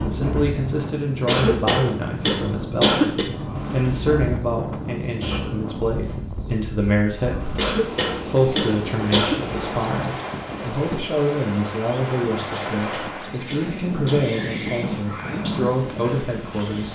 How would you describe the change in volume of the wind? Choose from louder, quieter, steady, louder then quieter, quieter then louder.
steady.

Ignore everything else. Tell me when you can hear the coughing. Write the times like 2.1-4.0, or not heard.
1.2-3.2, 7.5-9.4, 12.5-14.5.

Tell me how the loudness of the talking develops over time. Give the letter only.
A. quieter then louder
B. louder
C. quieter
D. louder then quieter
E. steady
E.